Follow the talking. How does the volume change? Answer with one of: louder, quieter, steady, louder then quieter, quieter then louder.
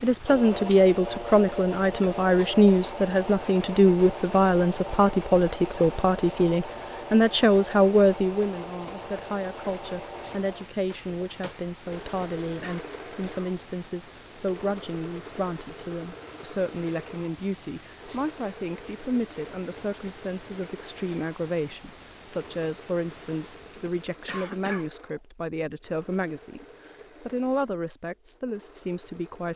quieter.